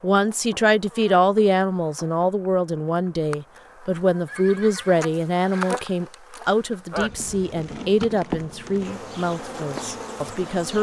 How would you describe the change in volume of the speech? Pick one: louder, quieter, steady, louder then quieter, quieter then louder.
quieter.